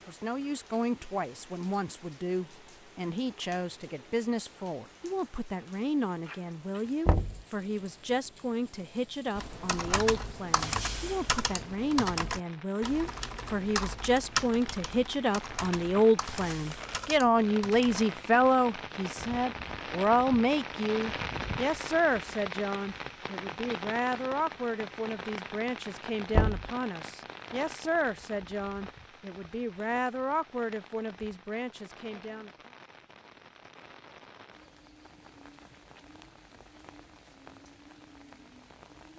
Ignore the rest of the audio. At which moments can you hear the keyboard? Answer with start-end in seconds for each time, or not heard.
9.3-18.2.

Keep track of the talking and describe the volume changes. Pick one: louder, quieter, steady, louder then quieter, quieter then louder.
louder then quieter.